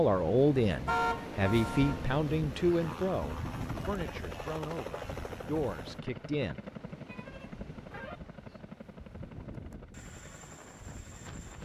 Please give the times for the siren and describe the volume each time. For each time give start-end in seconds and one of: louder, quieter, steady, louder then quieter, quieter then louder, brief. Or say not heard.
not heard.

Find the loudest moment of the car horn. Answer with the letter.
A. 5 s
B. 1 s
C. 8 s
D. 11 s
B.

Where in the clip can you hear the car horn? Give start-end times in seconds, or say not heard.
0.8-2.1, 7.0-8.2.